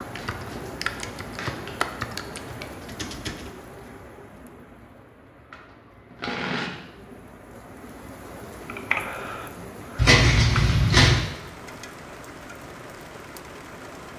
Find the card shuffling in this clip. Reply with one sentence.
You can hear the card shuffling from 0.1 to 1.8 s, from 5.5 to 7.2 s and from 9.9 to 11.2 s.